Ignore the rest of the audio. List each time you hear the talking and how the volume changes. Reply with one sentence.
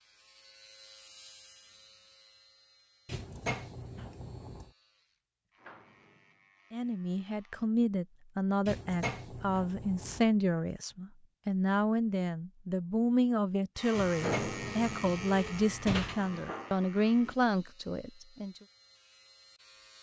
The talking can be heard from 6.7 to 18.6 s, at a steady volume.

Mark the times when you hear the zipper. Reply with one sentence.
You can't hear the zipper here.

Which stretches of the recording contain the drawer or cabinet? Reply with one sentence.
The drawer or cabinet can be heard from 3.0 to 4.7 s, from 8.7 to 10.2 s and from 13.9 to 16.2 s.